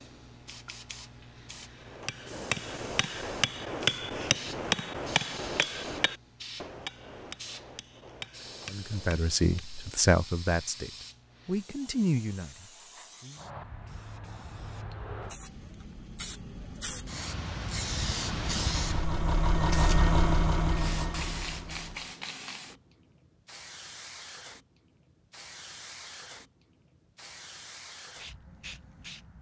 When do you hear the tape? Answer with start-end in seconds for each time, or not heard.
not heard.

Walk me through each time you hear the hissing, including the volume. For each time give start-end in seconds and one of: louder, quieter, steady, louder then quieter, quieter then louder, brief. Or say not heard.
0.0-29.3 louder then quieter.